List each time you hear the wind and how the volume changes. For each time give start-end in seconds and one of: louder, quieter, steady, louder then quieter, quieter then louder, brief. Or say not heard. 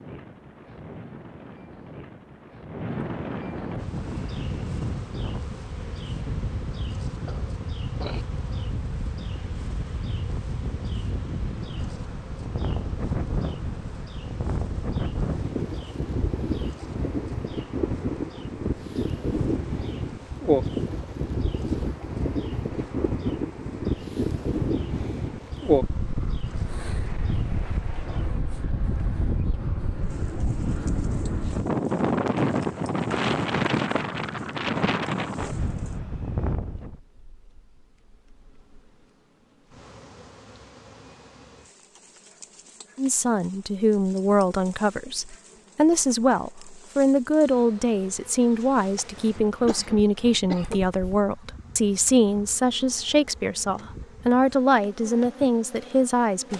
0.0-37.0 louder.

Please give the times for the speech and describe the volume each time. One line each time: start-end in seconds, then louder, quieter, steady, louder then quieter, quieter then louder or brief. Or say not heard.
43.0-56.5 steady.